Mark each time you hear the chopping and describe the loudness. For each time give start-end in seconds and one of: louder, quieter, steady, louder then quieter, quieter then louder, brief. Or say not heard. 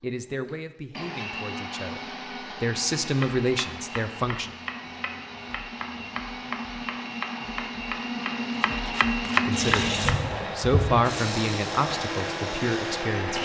3.1-10.3 louder.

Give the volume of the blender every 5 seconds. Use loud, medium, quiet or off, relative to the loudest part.
medium, loud, loud.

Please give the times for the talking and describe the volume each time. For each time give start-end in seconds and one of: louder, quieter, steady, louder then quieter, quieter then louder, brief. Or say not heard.
0.0-2.0 brief
2.6-4.5 brief
9.2-13.4 louder then quieter.